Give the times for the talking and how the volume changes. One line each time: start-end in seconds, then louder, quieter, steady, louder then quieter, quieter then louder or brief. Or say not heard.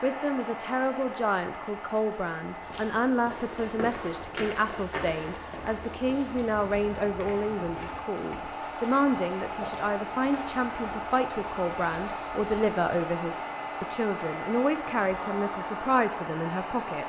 0.0-17.0 steady.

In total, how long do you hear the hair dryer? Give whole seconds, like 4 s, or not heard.
17 s.